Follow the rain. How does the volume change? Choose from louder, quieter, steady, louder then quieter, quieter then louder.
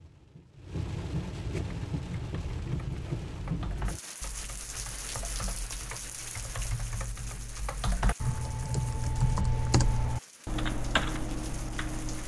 quieter.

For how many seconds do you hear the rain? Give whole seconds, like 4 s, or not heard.
12 s.